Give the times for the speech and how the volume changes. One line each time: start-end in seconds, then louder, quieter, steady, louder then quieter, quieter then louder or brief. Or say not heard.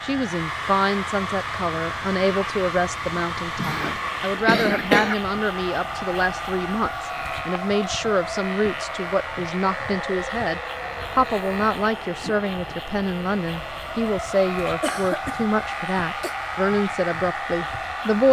0.0-18.2 steady.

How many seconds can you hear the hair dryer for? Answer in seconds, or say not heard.
18 s.